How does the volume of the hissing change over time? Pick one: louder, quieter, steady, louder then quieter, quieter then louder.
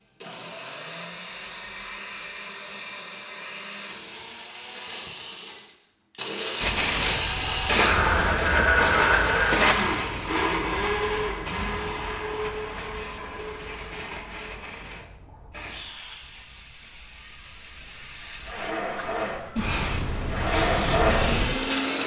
quieter then louder.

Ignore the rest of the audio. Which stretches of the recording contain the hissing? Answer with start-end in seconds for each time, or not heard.
6.6-22.0.